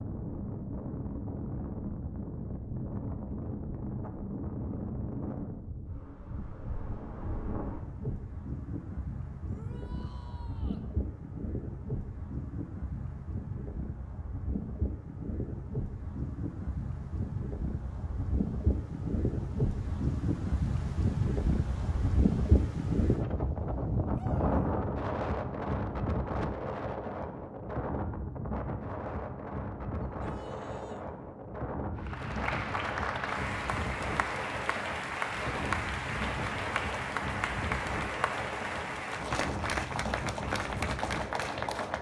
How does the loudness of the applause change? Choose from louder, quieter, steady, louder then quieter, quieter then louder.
steady.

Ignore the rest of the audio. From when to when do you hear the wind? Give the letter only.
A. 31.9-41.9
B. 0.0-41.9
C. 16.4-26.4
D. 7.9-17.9
B.